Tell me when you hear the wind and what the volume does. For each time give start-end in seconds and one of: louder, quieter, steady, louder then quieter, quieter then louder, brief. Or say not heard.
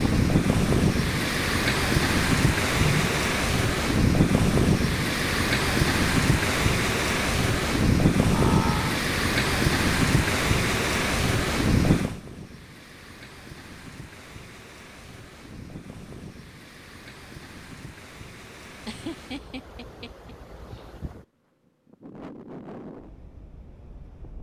0.0-24.3 quieter.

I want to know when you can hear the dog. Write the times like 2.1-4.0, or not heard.
not heard.